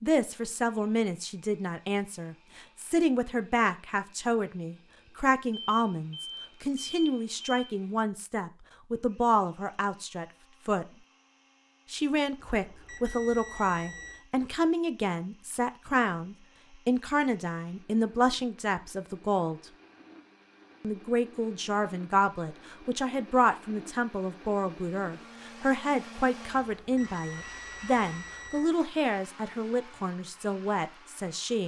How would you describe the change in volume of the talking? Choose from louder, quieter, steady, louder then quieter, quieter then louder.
steady.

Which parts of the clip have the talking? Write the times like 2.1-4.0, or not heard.
0.0-10.8, 11.9-19.6, 20.8-31.6.